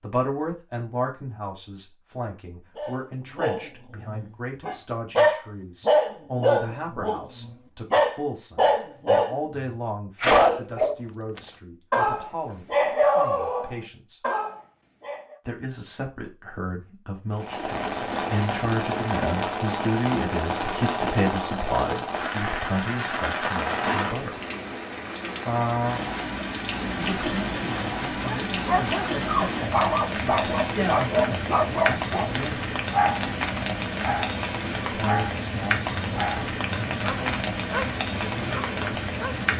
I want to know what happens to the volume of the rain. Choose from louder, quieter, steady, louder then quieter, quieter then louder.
steady.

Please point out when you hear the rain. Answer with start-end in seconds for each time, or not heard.
17.3-39.5.